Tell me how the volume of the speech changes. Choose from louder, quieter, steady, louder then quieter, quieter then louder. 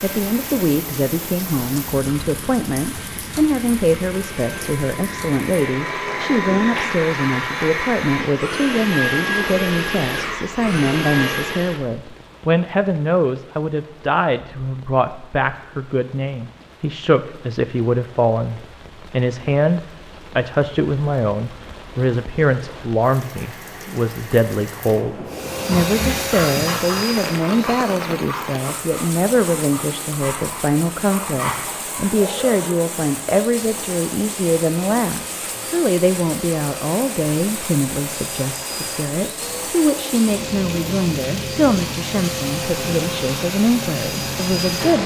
steady.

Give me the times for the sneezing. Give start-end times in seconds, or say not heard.
not heard.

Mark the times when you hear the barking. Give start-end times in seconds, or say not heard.
25.6-32.8.